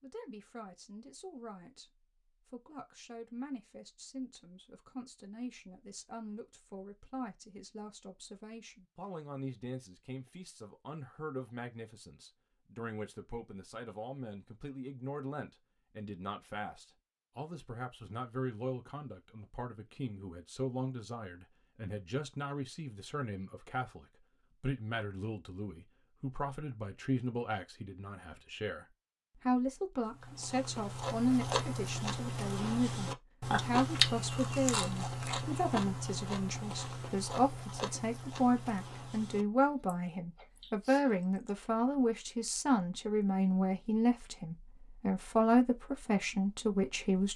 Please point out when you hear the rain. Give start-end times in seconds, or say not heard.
not heard.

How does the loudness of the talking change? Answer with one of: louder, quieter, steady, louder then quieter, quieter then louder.
louder.